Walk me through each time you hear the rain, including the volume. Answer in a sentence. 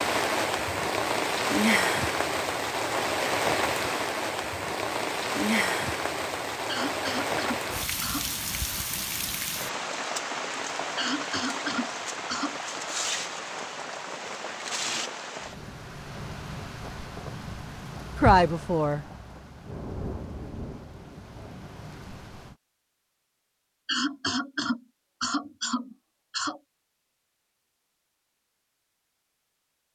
The rain can be heard from 0.0 to 22.6 s, getting quieter.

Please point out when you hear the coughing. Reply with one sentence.
The coughing can be heard from 6.7 to 8.3 s, from 10.9 to 12.6 s and from 23.9 to 26.6 s.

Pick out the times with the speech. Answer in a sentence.
You can hear the speech from 18.1 to 19.1 s.